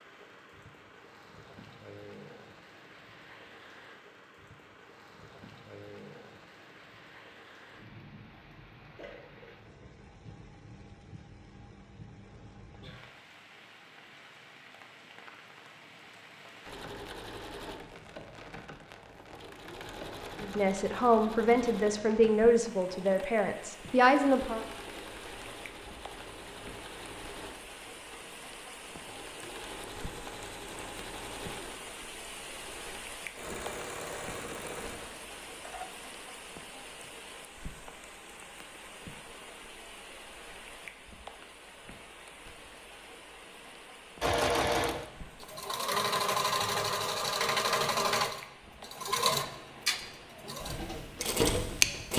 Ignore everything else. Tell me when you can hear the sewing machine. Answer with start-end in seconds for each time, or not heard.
16.6-36.0, 44.2-52.1.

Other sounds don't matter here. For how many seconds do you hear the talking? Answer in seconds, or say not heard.
4 s.